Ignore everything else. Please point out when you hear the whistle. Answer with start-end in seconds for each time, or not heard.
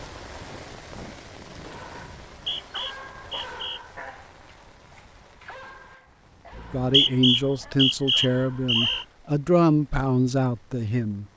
2.3-3.8, 6.5-9.1.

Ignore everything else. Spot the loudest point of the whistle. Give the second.
7 s.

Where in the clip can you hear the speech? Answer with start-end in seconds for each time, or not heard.
6.7-11.2.